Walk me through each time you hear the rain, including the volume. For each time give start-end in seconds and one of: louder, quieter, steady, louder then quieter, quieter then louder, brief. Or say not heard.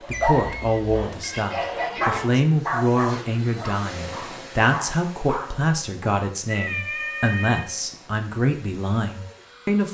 not heard.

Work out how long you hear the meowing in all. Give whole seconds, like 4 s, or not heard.
4 s.